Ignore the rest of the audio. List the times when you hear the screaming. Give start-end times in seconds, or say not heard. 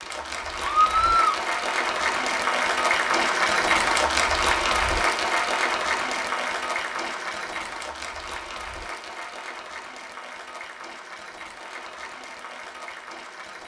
0.7-1.4.